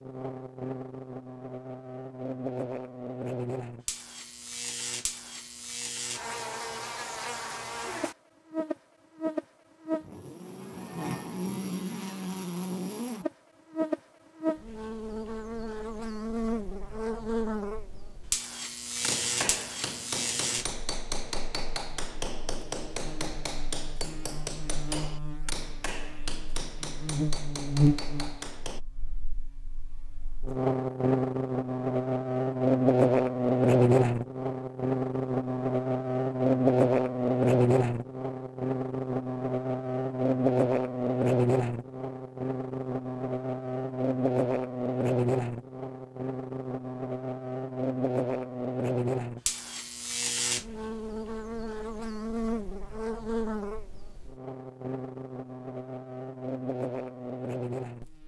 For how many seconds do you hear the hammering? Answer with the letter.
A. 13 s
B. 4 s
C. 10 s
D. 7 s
C.